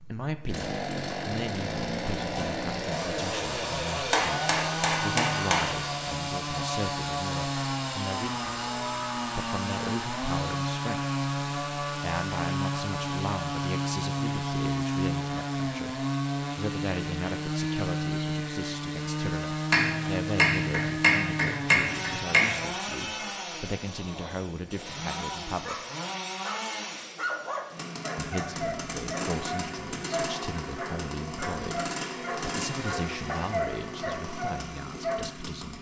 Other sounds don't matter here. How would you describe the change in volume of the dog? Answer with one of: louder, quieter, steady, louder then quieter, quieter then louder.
steady.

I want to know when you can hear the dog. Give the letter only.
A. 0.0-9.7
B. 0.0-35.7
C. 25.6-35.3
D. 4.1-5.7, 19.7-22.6
C.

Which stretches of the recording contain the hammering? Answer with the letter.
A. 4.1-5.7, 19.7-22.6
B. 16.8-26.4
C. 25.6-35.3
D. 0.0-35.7
A.